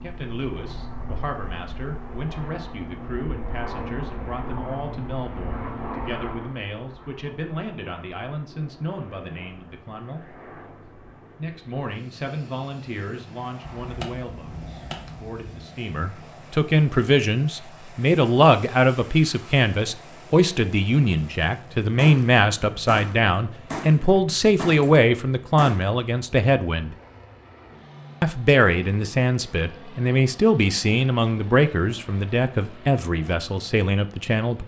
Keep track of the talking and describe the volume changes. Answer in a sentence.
The volume of the talking goes up.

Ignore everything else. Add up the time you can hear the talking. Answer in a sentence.
The talking can be heard for 32 seconds in total.